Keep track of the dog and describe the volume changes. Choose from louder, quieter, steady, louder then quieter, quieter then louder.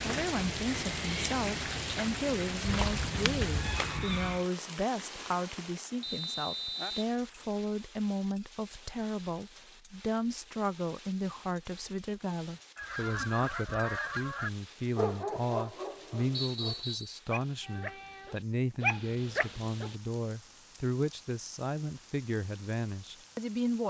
quieter then louder.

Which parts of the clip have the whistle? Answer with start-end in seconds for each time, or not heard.
6.0-7.0, 16.3-17.2.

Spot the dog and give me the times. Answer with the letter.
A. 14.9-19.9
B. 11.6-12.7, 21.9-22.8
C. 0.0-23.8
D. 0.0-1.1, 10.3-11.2
A.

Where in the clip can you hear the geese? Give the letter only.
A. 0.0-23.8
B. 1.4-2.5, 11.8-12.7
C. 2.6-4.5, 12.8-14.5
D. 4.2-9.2
C.